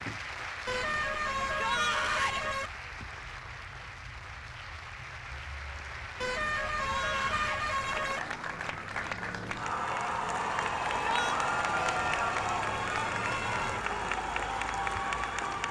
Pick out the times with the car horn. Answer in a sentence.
The car horn can be heard from 0.7 to 2.7 s, from 6.2 to 8.2 s and from 11.8 to 13.8 s.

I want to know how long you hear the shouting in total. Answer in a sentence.
You can hear the shouting for 2 seconds altogether.